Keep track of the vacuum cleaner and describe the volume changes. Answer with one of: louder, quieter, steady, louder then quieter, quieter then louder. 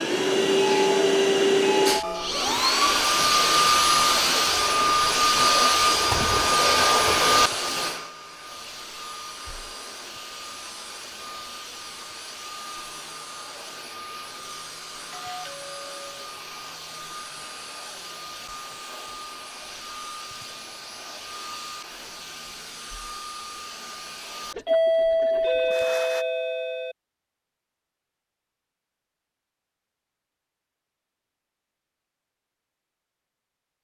quieter.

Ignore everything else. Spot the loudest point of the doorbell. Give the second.
25 s.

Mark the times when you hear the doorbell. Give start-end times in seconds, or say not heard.
0.6-2.3, 15.1-16.3, 24.6-26.9.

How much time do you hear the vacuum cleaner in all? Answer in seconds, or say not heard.
26 s.